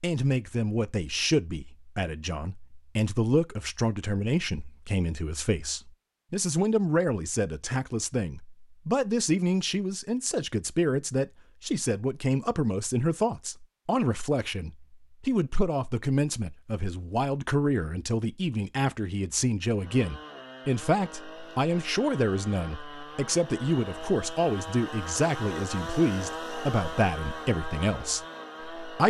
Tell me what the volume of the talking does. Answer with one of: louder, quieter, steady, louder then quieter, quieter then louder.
steady.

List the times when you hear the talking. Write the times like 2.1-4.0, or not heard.
0.0-29.0.